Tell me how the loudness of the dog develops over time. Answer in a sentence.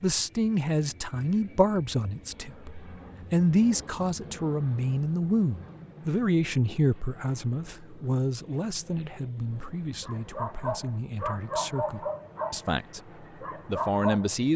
The volume of the dog goes down, then up.